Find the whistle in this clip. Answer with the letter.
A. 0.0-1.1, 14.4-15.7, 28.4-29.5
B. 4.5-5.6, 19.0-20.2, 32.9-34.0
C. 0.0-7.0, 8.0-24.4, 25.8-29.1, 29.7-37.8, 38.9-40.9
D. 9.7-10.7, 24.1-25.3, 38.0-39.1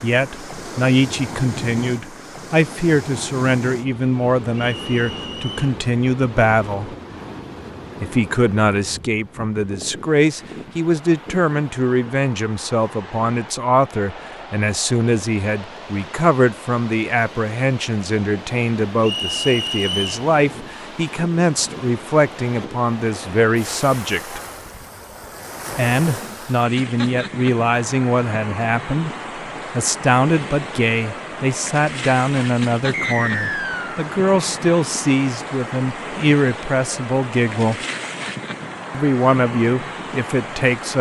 B.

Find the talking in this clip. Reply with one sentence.
You can hear the talking from 0.0 to 7.0 s, from 8.0 to 24.4 s, from 25.8 to 29.1 s, from 29.7 to 37.8 s and from 38.9 to 40.9 s.